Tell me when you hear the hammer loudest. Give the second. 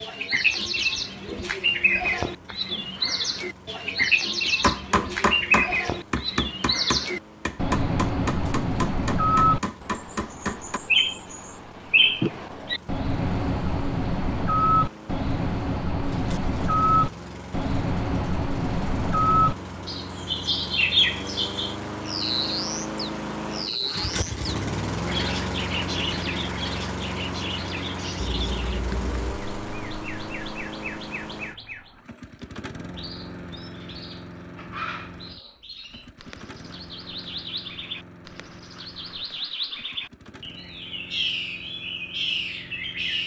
5 s.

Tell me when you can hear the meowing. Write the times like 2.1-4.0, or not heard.
28.1-29.4.